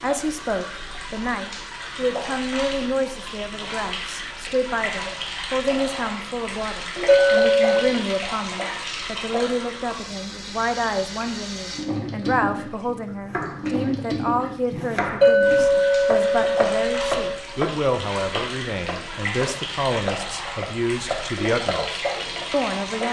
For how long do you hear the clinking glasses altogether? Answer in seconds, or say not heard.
3 s.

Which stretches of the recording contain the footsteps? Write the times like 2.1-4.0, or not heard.
not heard.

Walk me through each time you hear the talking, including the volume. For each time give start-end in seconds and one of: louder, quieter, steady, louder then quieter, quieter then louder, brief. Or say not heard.
0.0-23.0 steady.